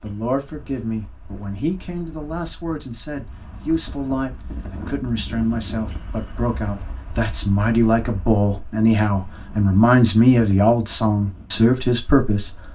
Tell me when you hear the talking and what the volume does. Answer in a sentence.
The talking can be heard from 0.0 to 12.5 s, getting louder.